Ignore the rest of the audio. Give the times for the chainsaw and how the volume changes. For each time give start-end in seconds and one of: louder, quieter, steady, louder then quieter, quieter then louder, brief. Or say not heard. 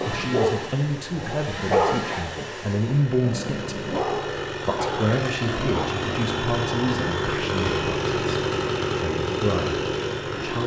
0.0-10.6 louder.